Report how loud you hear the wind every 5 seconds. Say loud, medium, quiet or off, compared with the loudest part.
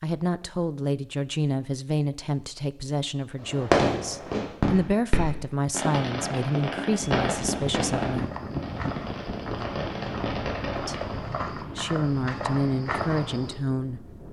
off, loud, medium.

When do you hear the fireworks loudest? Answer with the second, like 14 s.
4 s.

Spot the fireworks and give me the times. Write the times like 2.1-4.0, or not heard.
3.4-11.2.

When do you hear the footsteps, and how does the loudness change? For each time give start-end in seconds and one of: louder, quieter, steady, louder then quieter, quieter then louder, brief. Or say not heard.
8.0-13.6 louder.